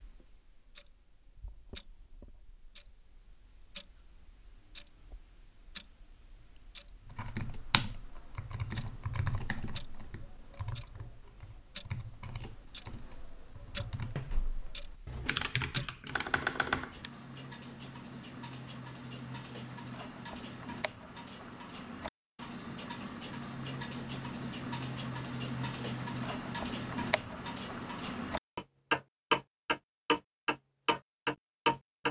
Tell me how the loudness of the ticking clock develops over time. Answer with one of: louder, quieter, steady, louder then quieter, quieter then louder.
louder.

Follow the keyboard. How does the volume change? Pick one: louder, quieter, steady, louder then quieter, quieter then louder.
quieter then louder.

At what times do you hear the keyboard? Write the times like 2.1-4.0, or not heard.
7.0-17.1.